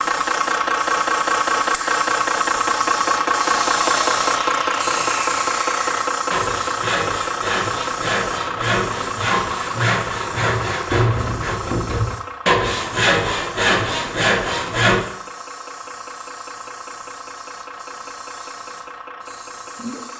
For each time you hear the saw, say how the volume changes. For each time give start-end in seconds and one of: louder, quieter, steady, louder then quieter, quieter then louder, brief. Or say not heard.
3.6-15.1 louder.